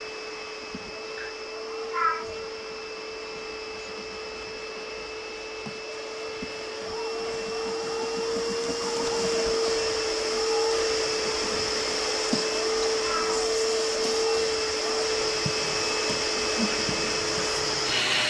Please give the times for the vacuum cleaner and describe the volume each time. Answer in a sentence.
You can hear the vacuum cleaner from 0.0 to 18.2 s, getting louder.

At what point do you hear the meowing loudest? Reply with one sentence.
The loudest moment of the meowing is at 2 seconds.